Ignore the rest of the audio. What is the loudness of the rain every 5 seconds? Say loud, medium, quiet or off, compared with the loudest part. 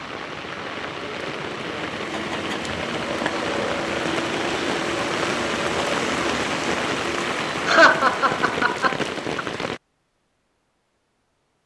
loud, loud, off.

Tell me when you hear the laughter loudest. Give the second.
8 s.